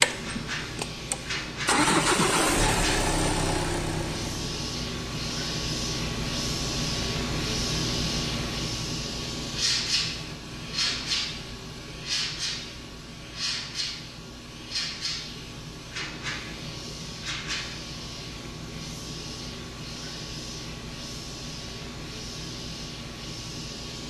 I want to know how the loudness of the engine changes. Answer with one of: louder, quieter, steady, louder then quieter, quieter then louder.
louder then quieter.